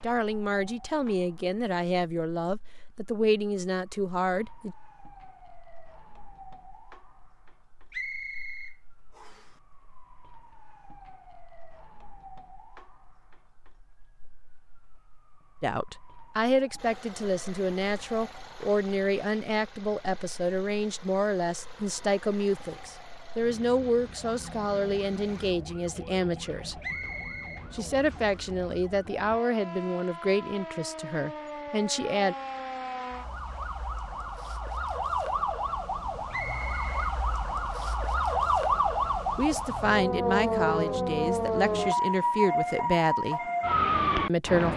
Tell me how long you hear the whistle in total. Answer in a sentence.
You can hear the whistle for 3 seconds altogether.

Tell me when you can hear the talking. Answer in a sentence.
The talking can be heard from 0.0 to 4.8 s, from 15.6 to 26.8 s, from 27.7 to 32.4 s, from 39.4 to 43.4 s and from 44.2 to 44.7 s.